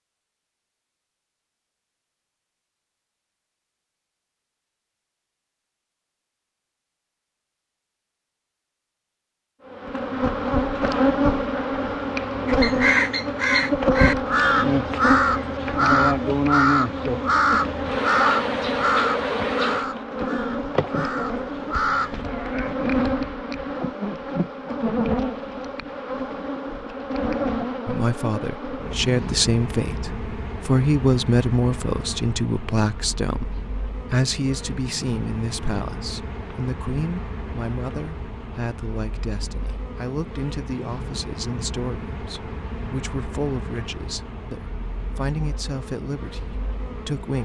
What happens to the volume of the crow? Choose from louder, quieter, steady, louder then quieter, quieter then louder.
quieter.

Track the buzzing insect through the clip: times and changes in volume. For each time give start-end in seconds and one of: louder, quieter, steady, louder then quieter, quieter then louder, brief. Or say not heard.
9.7-47.4 quieter.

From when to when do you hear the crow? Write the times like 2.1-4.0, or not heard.
12.4-22.2.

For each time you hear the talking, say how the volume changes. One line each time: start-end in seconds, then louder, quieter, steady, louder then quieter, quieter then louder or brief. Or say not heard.
27.9-47.4 quieter.